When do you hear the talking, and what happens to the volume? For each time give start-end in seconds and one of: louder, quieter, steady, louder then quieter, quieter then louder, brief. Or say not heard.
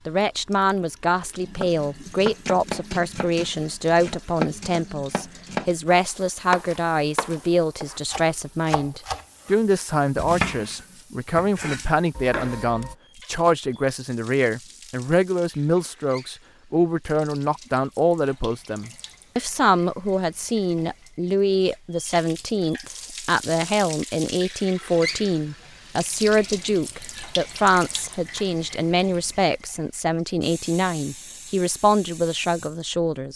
0.1-33.3 steady.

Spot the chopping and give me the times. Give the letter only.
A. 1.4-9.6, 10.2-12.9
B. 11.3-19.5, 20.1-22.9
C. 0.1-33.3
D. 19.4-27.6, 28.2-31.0
A.